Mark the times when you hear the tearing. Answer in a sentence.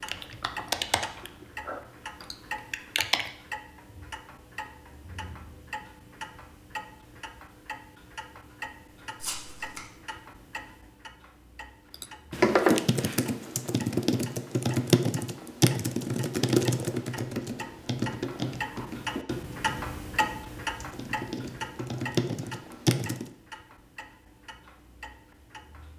You can hear the tearing from 9.2 to 9.8 s.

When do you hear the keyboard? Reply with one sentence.
The keyboard can be heard from 0.1 to 3.3 s and from 11.9 to 23.2 s.